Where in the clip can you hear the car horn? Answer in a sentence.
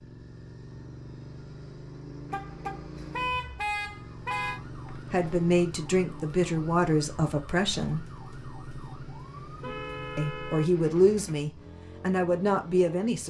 You can hear the car horn from 2.3 to 4.6 s and from 9.6 to 11.4 s.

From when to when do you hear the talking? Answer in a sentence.
The talking can be heard from 5.1 to 8.1 s and from 10.2 to 13.2 s.